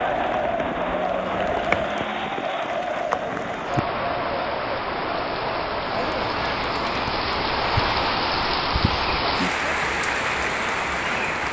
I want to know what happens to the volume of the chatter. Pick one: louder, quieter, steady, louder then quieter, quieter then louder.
quieter.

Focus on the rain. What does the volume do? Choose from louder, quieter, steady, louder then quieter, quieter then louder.
louder.